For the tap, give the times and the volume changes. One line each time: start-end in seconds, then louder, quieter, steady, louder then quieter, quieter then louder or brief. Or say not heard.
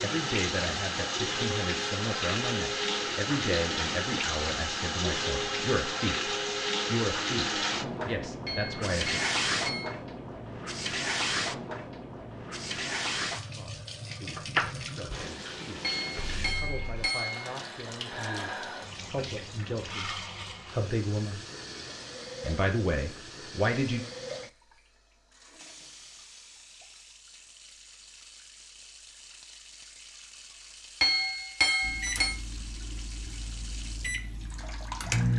0.0-35.3 quieter.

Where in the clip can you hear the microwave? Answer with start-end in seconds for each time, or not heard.
31.8-35.3.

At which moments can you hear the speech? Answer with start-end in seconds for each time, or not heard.
0.0-9.2, 13.6-21.4, 22.4-24.1.